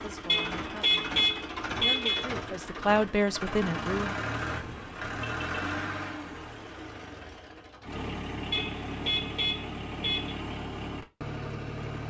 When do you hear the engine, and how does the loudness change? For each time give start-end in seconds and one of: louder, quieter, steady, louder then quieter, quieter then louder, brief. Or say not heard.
0.0-12.0 steady.